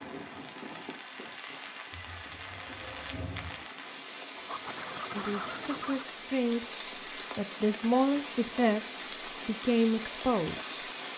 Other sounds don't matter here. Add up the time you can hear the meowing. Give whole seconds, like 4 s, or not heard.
2 s.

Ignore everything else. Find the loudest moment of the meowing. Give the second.
3 s.